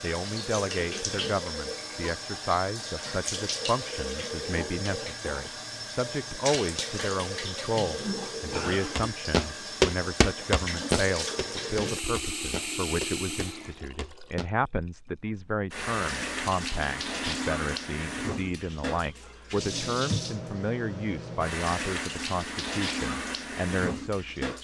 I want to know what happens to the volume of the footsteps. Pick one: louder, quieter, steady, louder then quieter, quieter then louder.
quieter.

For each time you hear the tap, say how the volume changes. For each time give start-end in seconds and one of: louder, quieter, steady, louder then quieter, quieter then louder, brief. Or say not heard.
0.0-24.5 steady.